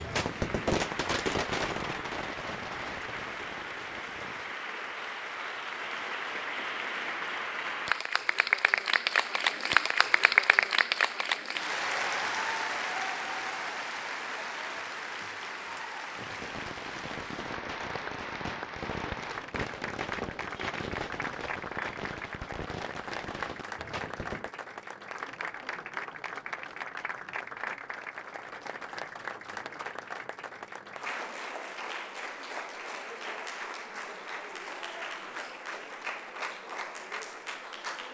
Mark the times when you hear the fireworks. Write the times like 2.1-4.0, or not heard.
0.0-4.5, 16.1-24.5.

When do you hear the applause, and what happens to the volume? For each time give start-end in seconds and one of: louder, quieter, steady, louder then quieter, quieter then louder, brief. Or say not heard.
0.0-38.0 louder then quieter.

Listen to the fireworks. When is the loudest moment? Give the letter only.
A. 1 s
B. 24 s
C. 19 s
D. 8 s
A.